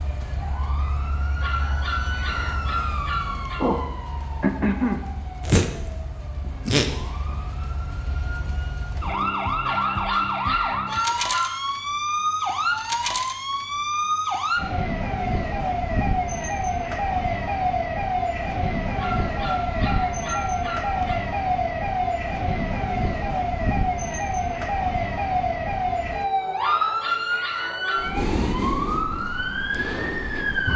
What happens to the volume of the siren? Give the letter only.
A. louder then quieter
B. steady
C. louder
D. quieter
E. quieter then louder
B.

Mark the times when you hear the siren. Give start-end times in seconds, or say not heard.
0.0-30.7.